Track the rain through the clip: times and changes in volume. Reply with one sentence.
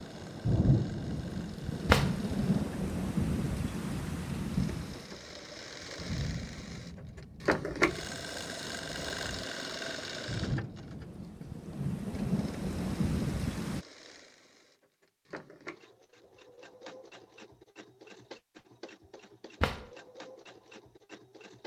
The rain can be heard from 0.0 to 13.8 s, getting quieter then louder.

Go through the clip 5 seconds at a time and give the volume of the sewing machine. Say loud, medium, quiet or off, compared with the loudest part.
quiet, loud, medium, quiet, quiet.